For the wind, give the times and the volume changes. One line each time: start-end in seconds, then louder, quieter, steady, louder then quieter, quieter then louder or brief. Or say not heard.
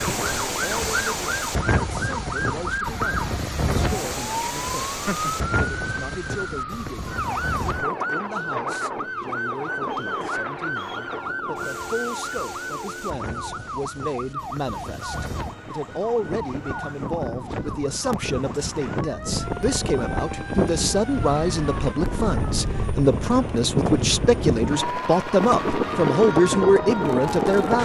0.0-27.7 quieter then louder.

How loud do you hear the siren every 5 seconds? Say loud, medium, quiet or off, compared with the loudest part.
loud, loud, loud, medium, medium, loud.